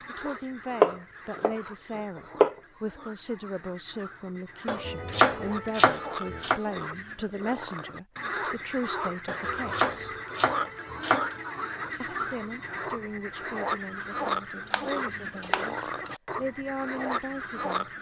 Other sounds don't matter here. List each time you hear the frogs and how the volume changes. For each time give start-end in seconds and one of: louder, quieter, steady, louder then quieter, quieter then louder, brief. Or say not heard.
0.0-17.9 louder.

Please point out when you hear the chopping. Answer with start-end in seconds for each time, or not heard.
0.2-2.5, 4.7-6.6, 9.2-11.7, 14.7-16.2.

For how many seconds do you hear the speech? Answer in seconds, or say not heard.
16 s.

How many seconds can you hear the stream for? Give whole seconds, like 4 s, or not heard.
not heard.